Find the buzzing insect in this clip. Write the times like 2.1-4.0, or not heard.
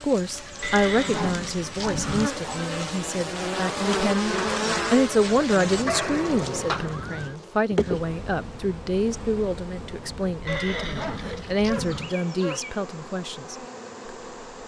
0.0-14.6.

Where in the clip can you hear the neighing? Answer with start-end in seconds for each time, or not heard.
0.6-2.3, 5.7-7.3, 10.4-12.2.